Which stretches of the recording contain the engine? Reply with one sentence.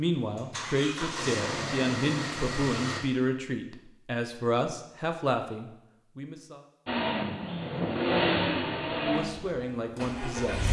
You can hear the engine from 0.1 to 3.0 s and from 6.8 to 10.6 s.